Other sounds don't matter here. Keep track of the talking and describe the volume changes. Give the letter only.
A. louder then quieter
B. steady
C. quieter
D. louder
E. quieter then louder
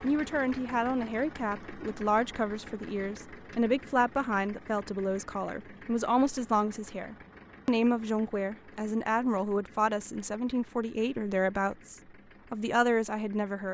B.